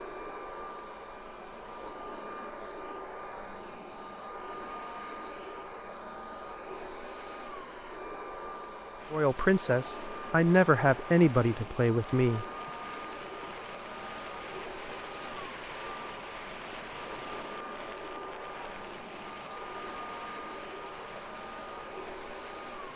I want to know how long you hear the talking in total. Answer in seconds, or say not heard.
3 s.